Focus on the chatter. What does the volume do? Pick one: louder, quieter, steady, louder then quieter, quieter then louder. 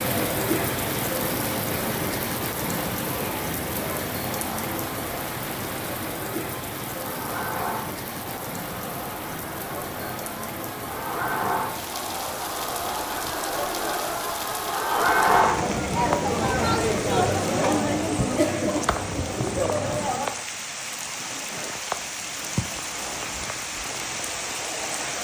louder.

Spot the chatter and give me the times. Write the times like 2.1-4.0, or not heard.
0.0-20.3.